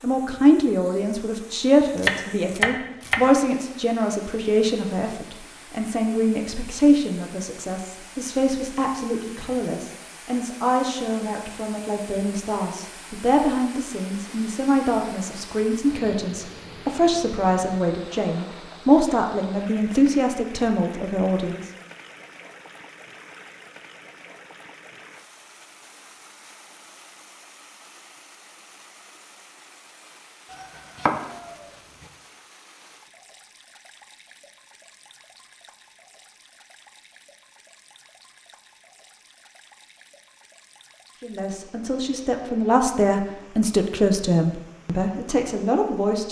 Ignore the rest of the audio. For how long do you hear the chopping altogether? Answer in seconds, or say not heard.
2 s.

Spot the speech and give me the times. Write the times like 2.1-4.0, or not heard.
0.0-21.6, 41.2-46.2.